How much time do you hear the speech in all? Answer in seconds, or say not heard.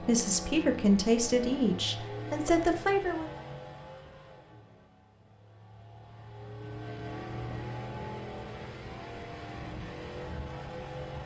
3 s.